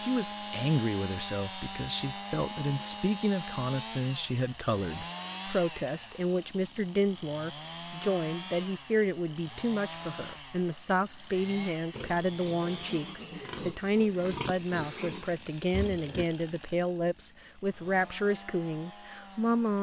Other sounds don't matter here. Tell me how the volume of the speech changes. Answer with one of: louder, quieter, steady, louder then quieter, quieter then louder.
steady.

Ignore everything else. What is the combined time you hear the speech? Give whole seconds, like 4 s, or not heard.
20 s.